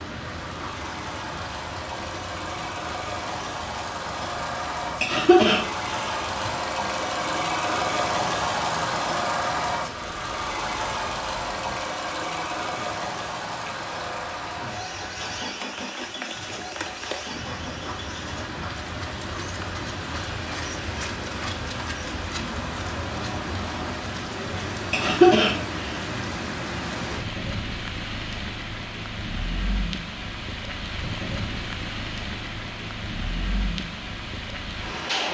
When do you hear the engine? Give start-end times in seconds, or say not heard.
0.1-18.4.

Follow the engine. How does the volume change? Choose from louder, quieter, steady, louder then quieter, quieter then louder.
louder then quieter.